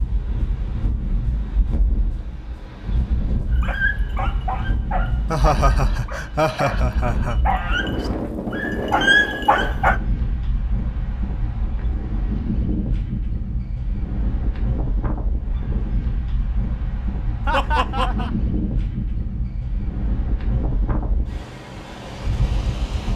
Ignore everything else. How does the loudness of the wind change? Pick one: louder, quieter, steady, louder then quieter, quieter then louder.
steady.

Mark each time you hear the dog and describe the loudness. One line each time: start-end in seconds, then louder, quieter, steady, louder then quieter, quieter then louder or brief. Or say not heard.
3.5-10.0 quieter then louder.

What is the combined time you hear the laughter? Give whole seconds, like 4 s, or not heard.
3 s.